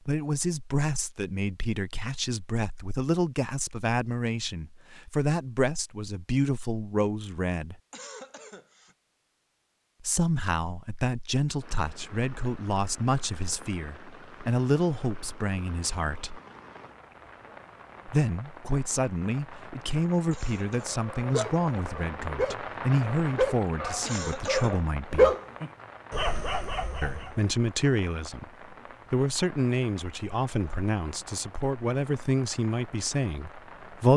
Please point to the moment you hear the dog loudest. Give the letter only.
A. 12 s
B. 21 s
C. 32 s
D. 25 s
D.